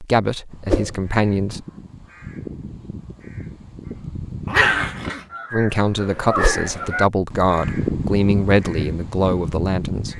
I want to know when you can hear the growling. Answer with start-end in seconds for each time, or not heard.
4.5-5.2.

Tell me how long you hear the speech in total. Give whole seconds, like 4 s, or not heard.
6 s.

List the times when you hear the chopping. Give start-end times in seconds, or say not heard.
not heard.